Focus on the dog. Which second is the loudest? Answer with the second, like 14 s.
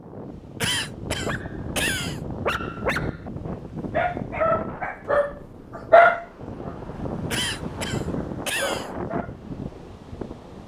6 s.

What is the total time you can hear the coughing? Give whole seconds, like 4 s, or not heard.
3 s.